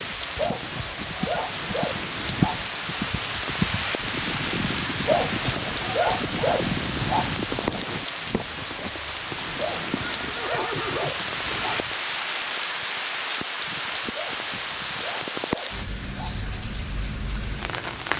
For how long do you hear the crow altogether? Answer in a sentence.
You can't hear the crow here.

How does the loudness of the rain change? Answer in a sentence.
The volume of the rain stays about the same.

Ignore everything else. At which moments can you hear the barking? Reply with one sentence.
You can hear the barking from 0.3 to 2.7 s, from 5.0 to 7.5 s, from 9.6 to 12.1 s and from 14.1 to 16.4 s.